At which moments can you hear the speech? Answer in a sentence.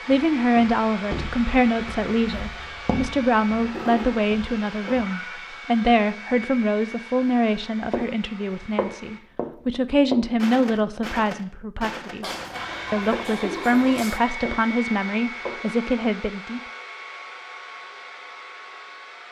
You can hear the speech from 0.1 to 12.2 s and from 12.9 to 16.6 s.